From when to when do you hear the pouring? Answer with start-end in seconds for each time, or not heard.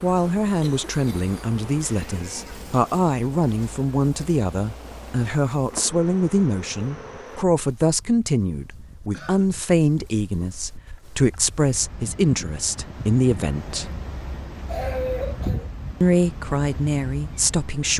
not heard.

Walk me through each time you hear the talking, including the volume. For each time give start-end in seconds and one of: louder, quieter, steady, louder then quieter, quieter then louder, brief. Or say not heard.
0.0-13.9 steady
16.0-17.9 brief.